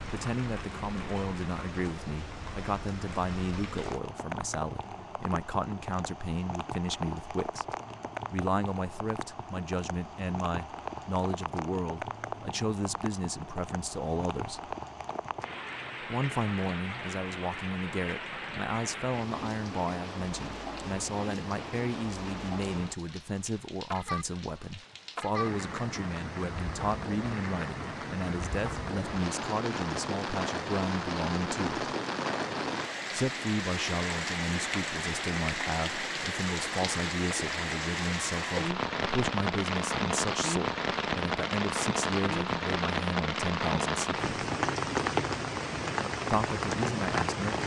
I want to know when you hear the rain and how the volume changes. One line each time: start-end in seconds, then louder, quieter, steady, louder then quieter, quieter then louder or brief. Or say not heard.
0.0-47.6 louder.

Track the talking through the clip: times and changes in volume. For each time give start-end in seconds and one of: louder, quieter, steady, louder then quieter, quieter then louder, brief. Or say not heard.
0.0-7.7 steady
8.3-14.8 steady
16.1-31.9 steady
33.1-44.3 steady
46.3-47.6 brief.